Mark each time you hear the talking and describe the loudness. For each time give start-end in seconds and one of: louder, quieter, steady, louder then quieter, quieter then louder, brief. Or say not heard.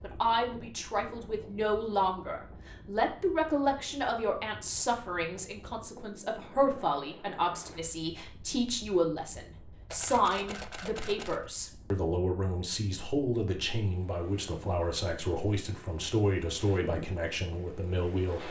0.0-18.4 steady.